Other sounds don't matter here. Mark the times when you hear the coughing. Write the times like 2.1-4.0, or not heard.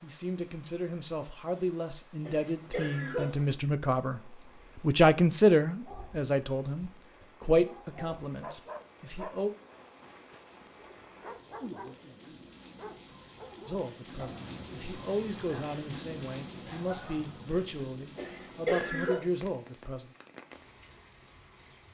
2.2-3.5, 18.1-19.2.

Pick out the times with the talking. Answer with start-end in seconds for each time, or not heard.
0.0-9.5, 13.7-20.1.